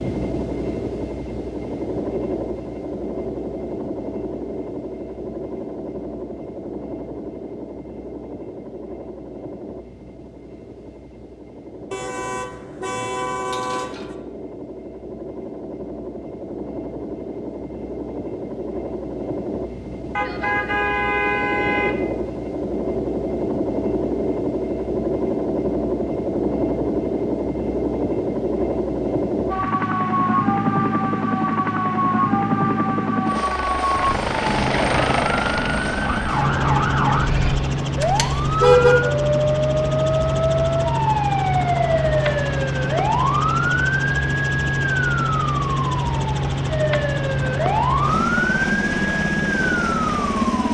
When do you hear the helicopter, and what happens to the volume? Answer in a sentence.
The helicopter can be heard from 0.0 to 50.7 s, getting louder.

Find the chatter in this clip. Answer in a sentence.
The chatter can't be heard in this clip.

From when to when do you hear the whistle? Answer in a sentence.
You can't hear the whistle here.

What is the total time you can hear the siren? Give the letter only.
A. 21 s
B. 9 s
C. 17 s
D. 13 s
A.